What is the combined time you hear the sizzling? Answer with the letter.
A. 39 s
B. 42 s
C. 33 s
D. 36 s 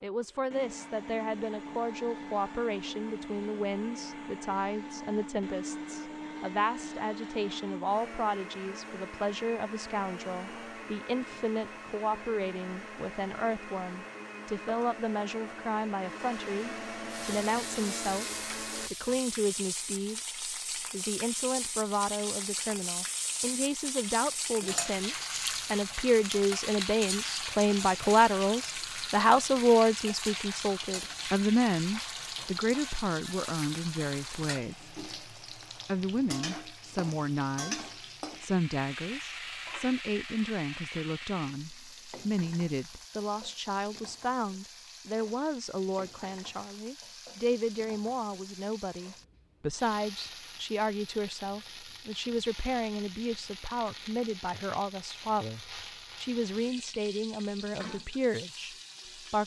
B.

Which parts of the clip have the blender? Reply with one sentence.
The blender can be heard from 0.0 to 18.9 s.